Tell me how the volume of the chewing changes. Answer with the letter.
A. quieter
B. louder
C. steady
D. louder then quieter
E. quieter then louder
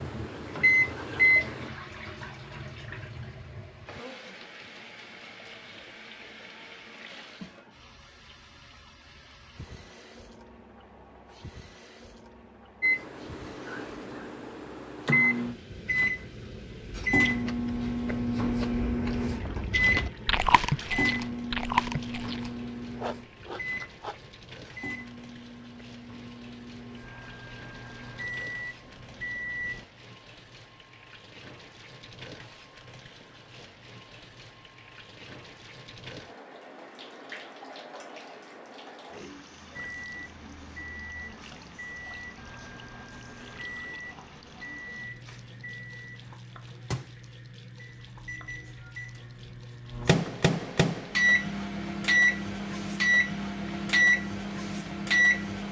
D.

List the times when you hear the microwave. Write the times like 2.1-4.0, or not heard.
0.0-1.7, 12.8-29.9, 39.8-55.6.